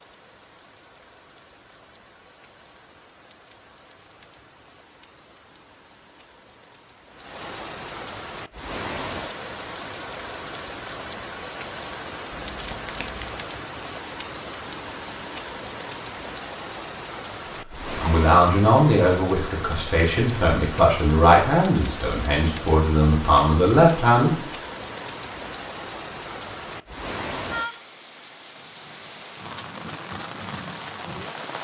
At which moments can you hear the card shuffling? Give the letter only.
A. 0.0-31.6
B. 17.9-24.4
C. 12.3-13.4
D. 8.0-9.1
C.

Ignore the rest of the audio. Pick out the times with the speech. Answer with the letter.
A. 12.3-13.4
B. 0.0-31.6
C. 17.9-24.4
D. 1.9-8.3
C.